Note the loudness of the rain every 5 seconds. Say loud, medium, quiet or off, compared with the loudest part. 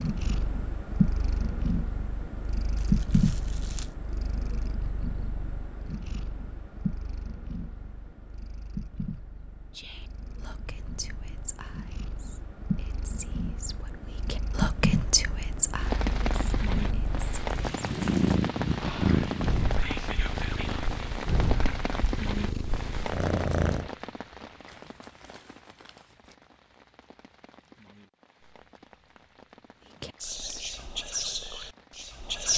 off, off, off, loud, loud, quiet, quiet.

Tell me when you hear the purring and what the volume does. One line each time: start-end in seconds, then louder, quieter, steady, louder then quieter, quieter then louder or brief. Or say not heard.
0.0-23.9 quieter then louder.